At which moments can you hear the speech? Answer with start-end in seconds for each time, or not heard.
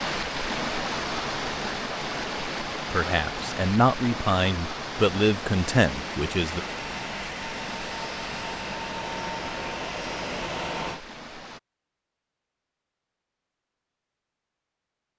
2.9-6.6.